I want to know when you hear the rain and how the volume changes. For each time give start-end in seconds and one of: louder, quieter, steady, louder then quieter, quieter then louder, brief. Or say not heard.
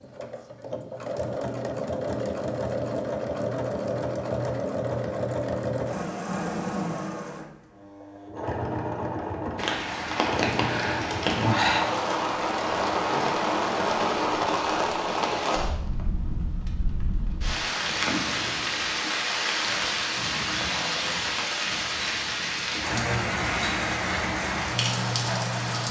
9.6-25.8 steady.